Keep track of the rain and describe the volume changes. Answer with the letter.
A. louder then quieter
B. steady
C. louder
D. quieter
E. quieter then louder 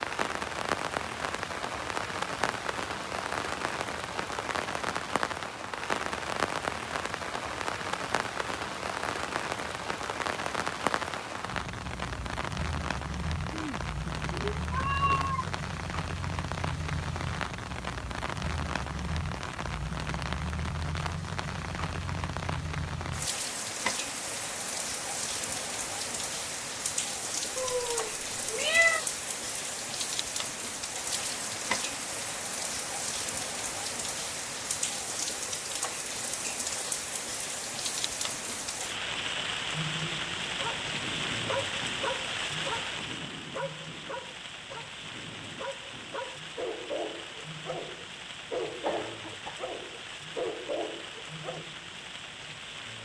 D.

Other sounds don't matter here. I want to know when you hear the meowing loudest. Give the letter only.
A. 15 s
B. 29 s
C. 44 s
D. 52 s
B.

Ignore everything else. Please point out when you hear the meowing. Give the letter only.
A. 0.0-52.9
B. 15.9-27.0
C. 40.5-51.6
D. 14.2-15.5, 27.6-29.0
D.